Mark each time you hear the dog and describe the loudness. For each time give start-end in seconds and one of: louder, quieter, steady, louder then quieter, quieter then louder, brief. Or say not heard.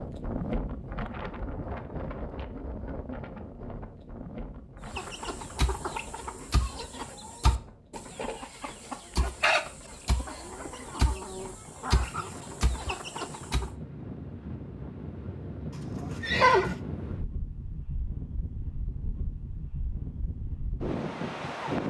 not heard.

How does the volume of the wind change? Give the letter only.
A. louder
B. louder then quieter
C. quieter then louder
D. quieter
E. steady
C.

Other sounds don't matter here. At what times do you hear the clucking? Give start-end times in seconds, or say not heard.
4.8-13.7.